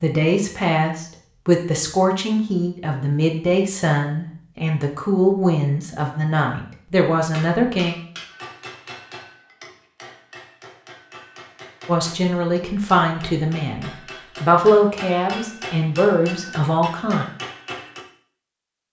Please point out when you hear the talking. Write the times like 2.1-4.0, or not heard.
0.0-8.0, 11.8-17.2.